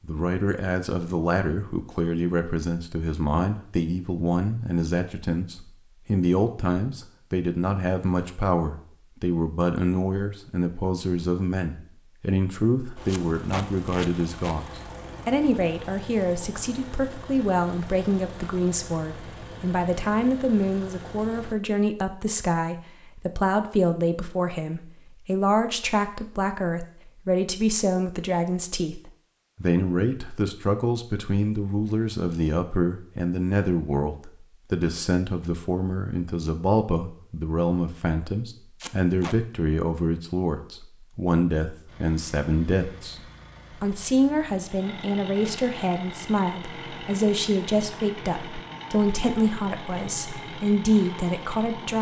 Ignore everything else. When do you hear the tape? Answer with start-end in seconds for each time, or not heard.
13.1-14.6, 38.8-39.4.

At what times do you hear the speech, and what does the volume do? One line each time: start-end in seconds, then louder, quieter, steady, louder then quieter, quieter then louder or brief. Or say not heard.
0.0-51.9 steady.